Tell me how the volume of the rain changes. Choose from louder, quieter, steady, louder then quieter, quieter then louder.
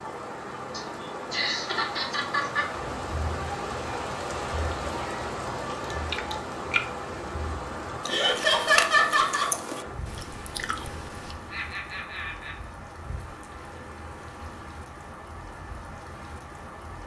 quieter.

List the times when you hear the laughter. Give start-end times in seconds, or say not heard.
0.7-2.6, 8.1-9.5, 11.5-12.6.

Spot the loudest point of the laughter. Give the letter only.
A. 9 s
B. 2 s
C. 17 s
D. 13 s
A.